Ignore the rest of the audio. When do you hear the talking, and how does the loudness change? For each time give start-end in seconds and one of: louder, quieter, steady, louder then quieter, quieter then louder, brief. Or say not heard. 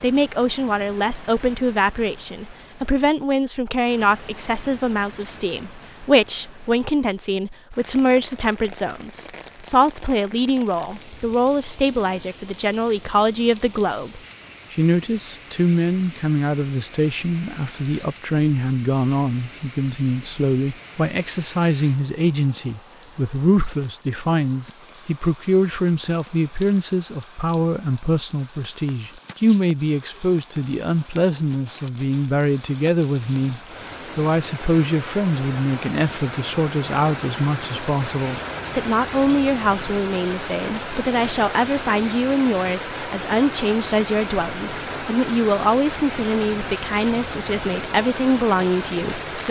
0.0-49.4 steady.